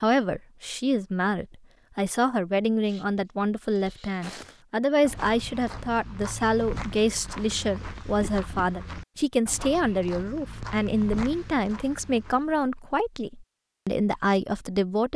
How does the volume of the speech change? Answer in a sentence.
The volume of the speech stays about the same.